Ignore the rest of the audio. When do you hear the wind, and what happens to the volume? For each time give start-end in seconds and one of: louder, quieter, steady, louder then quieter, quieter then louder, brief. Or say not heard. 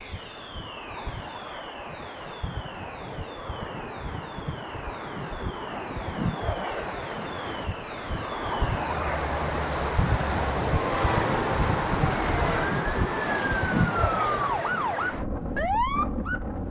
0.0-16.6 louder.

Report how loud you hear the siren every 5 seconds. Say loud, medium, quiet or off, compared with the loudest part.
quiet, quiet, loud, loud.